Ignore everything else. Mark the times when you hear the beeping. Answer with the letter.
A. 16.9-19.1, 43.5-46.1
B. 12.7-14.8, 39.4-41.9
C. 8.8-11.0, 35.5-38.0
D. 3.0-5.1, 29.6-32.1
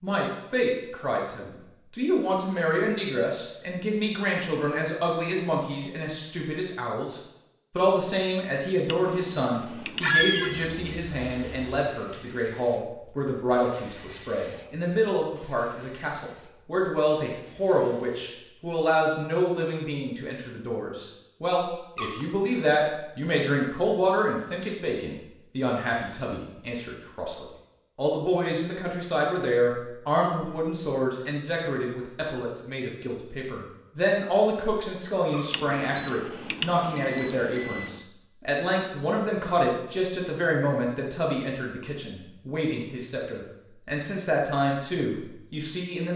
C.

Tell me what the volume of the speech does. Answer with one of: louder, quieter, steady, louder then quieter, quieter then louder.
steady.